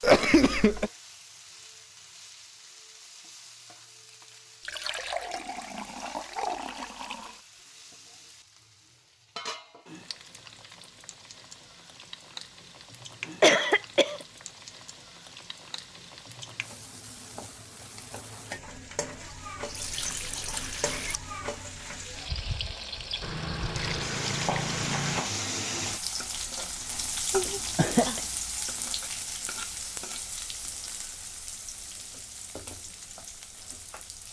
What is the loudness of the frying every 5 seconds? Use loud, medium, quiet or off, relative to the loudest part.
quiet, quiet, medium, medium, loud, loud, medium.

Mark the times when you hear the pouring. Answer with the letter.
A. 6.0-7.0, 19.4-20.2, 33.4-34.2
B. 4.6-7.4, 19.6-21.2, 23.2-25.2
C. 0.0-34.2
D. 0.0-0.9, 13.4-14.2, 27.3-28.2
B.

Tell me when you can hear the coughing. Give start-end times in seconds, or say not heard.
0.0-0.9, 13.4-14.2, 27.3-28.2.